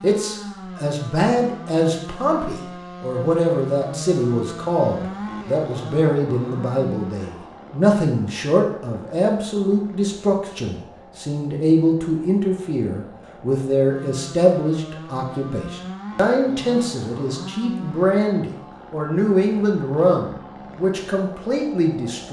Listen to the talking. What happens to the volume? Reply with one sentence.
The loudness of the talking stays about the same.